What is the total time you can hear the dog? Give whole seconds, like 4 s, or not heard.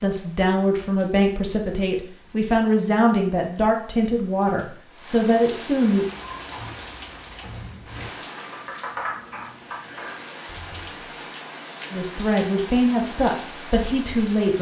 not heard.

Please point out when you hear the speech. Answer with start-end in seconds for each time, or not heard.
0.0-6.0, 11.9-14.5.